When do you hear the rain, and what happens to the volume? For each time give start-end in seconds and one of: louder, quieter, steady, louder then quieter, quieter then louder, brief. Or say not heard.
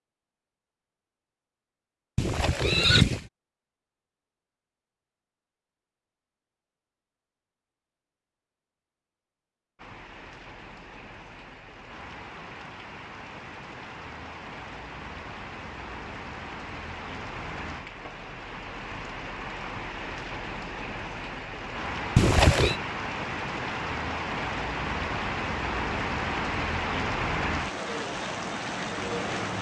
9.8-29.5 louder.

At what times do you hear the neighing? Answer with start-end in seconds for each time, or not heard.
2.1-3.2, 22.1-22.8.